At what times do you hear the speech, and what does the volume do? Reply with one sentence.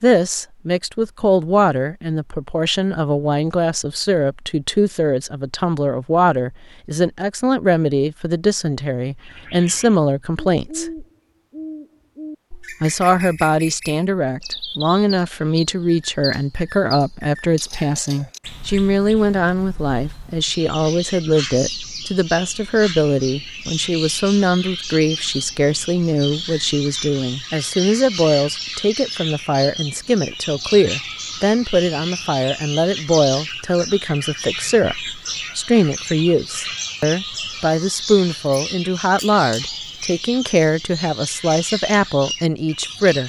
You can hear the speech from 0.0 to 10.9 s, at a steady volume; and from 12.8 to 43.2 s, at a steady volume.